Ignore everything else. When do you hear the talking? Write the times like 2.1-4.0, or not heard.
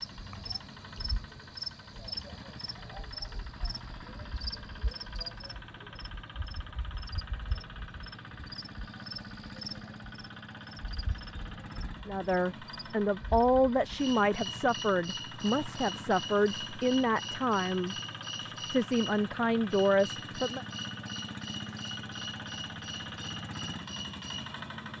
12.1-20.6.